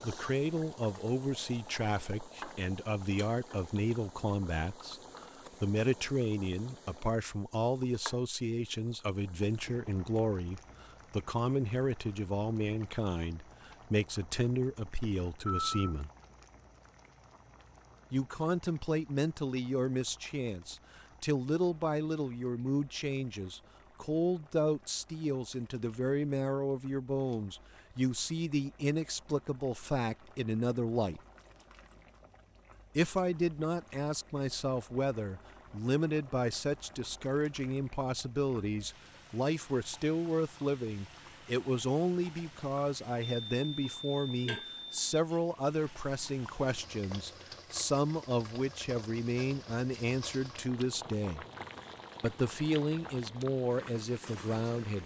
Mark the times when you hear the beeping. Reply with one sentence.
The beeping can be heard from 15.0 to 15.9 s and from 43.2 to 45.2 s.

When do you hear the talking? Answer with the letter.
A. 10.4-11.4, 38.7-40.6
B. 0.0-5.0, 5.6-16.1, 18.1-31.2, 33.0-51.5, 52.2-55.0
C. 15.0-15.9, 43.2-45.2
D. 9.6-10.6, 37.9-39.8
B.